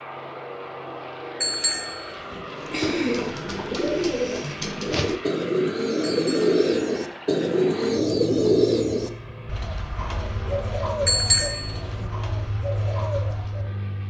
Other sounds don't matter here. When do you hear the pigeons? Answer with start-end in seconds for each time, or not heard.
2.5-13.7.